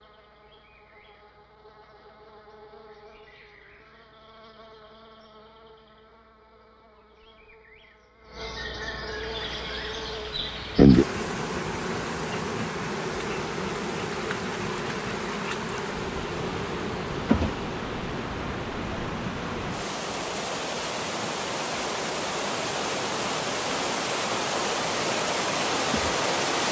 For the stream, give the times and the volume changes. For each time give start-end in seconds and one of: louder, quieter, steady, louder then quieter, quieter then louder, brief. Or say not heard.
9.2-26.6 louder.